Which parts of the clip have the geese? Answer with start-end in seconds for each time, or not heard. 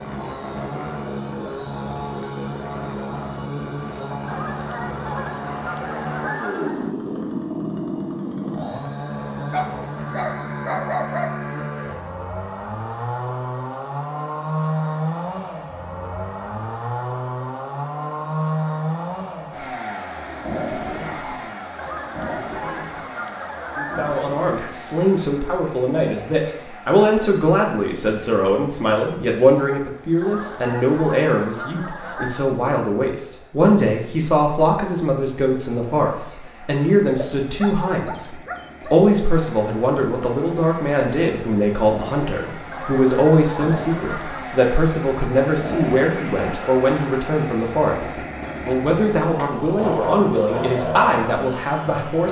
4.2-7.0, 21.8-24.4, 30.2-32.5, 42.7-44.5.